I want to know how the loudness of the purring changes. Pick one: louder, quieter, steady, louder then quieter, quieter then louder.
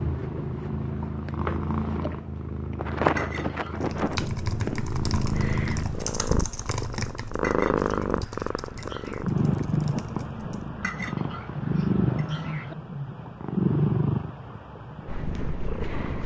steady.